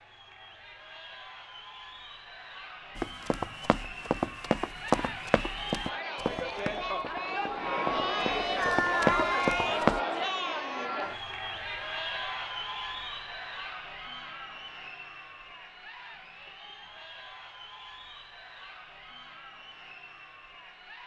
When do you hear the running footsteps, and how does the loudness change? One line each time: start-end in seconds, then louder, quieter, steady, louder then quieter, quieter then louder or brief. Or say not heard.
3.0-10.0 quieter then louder.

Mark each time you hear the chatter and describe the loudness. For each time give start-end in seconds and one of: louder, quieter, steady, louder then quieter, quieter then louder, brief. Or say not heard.
0.0-21.0 louder then quieter.